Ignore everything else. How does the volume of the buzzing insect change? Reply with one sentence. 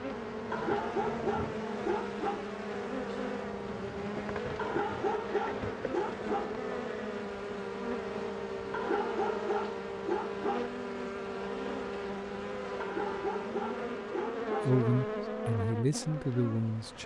The loudness of the buzzing insect stays about the same.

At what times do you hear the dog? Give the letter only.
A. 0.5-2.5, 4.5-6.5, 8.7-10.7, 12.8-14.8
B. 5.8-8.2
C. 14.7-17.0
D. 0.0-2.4
A.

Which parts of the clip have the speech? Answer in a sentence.
The speech can be heard from 14.7 to 17.0 s.